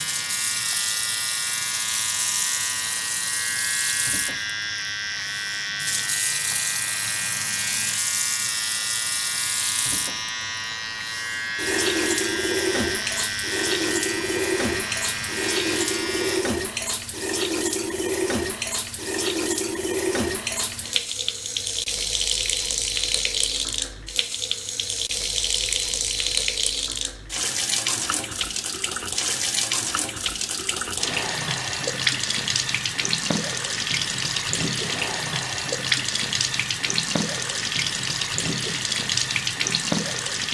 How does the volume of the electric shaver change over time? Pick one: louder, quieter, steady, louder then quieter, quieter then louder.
steady.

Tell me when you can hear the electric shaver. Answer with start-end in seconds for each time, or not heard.
0.0-16.4.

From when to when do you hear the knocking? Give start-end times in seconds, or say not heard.
not heard.